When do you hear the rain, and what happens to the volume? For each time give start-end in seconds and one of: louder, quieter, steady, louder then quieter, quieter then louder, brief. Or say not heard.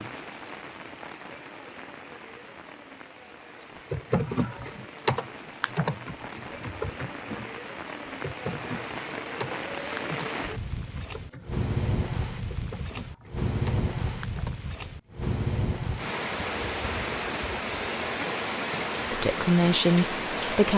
0.0-20.7 louder.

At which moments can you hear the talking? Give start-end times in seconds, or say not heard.
19.1-20.7.